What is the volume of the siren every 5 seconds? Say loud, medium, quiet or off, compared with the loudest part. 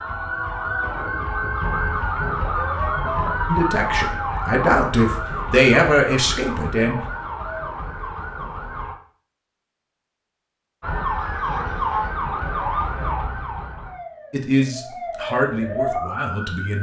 loud, medium, loud, loud.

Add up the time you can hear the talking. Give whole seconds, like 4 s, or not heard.
6 s.